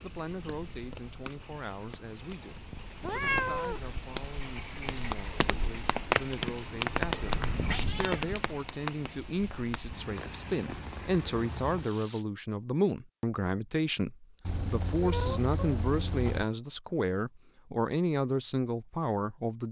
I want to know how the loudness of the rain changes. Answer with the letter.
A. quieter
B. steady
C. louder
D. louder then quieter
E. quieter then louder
D.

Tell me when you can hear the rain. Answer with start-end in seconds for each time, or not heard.
0.0-12.2.